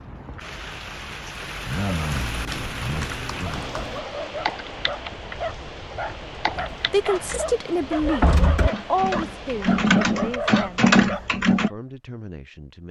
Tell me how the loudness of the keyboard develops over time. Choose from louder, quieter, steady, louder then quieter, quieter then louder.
louder.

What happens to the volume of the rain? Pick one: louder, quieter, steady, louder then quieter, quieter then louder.
quieter.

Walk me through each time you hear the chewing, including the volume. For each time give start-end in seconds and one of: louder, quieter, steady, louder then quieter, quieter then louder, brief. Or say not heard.
not heard.